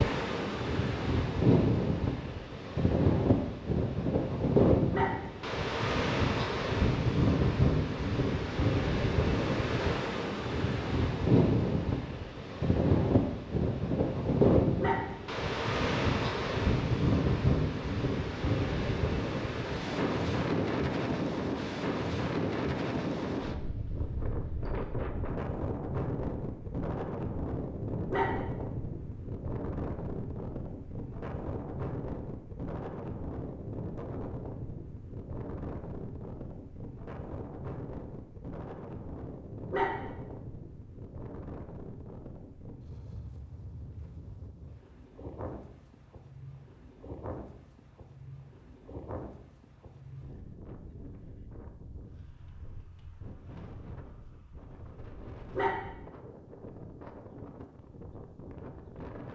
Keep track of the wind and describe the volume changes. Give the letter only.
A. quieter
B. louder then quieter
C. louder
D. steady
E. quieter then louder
A.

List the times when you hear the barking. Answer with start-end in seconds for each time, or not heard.
4.9-5.4, 14.8-15.3, 28.1-28.6, 39.7-40.2, 55.5-56.0.